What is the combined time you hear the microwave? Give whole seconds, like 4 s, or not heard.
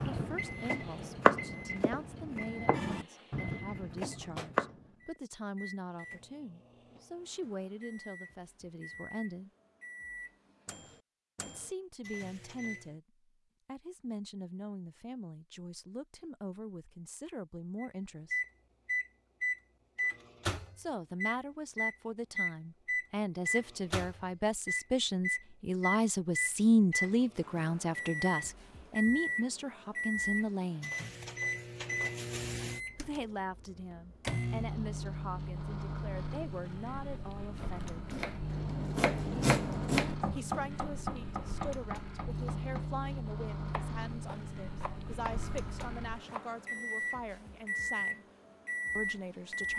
45 s.